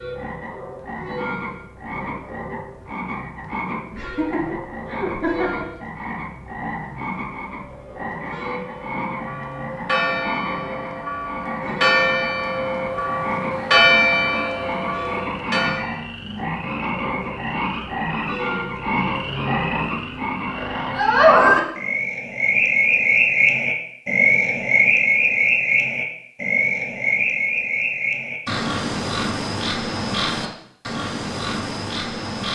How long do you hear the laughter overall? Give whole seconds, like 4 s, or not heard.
2 s.